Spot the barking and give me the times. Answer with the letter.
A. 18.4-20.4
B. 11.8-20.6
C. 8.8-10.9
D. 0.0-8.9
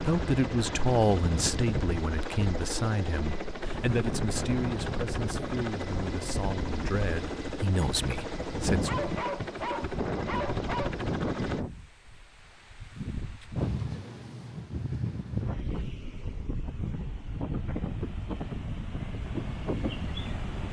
C.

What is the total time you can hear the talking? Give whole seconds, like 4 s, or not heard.
9 s.